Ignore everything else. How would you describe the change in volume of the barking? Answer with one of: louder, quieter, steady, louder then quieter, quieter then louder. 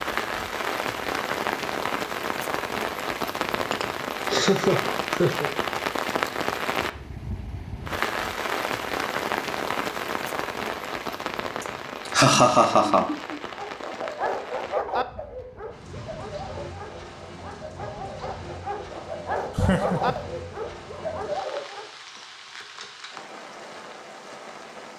quieter then louder.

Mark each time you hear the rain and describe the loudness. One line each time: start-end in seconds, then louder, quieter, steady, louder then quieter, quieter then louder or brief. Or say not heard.
0.0-24.9 quieter.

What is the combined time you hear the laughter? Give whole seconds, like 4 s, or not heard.
4 s.